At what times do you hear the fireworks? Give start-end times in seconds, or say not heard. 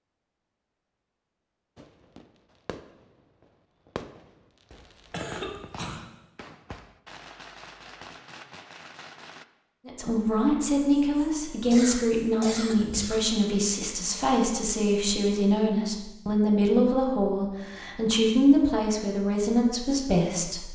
1.8-9.4.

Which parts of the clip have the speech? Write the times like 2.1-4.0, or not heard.
9.8-20.6.